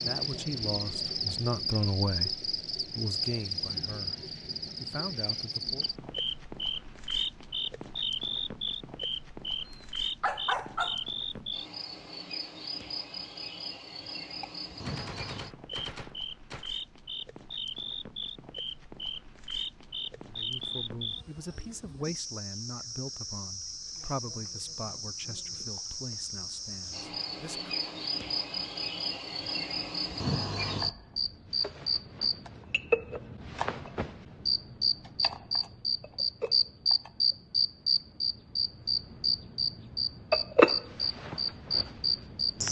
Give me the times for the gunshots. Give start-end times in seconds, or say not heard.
14.4-16.7.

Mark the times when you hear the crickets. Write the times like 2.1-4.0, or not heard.
0.0-42.6.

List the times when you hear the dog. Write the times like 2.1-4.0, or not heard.
9.7-11.4.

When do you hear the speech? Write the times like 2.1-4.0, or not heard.
0.0-5.8, 20.1-27.8.